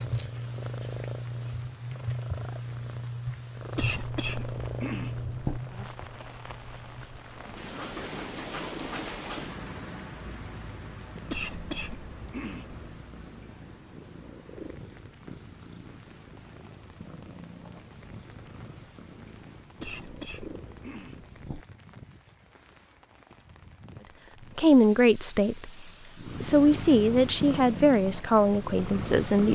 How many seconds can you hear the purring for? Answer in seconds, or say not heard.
25 s.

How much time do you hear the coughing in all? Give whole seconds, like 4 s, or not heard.
5 s.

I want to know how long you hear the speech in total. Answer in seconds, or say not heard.
5 s.